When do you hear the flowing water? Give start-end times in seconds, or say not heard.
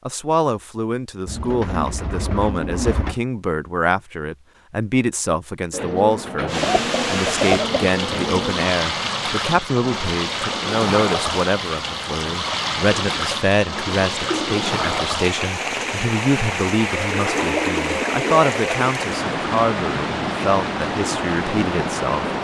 6.5-22.3.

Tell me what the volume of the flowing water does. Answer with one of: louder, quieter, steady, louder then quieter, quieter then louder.
steady.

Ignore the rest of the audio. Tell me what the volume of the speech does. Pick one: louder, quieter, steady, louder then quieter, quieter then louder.
steady.